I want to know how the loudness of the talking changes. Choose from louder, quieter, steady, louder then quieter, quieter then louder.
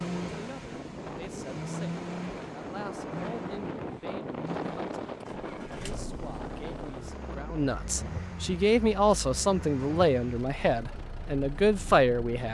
louder.